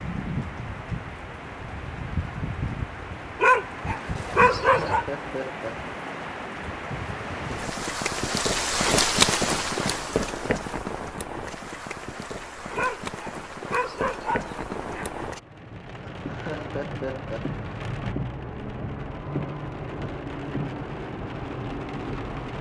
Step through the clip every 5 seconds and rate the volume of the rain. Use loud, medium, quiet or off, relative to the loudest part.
medium, loud, medium, medium, medium.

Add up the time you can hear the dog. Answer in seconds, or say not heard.
4 s.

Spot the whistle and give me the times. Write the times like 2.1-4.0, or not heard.
not heard.